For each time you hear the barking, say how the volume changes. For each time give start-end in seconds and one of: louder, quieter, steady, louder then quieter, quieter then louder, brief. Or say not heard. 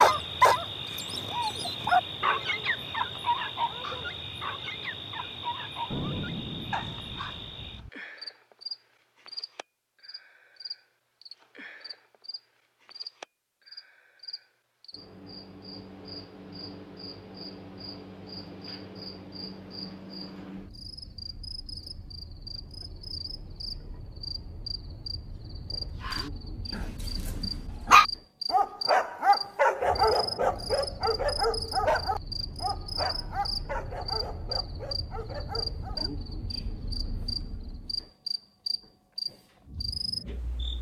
0.0-7.4 quieter
26.0-36.1 quieter.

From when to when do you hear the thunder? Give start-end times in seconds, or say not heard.
5.9-7.9.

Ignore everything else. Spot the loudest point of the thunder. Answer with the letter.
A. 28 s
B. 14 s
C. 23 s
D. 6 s
D.